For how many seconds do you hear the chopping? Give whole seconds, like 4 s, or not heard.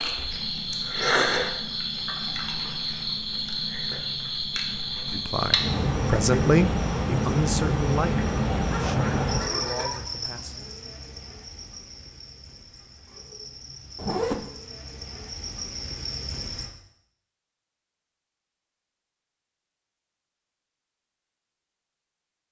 not heard.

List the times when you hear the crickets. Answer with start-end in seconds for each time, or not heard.
0.0-16.7.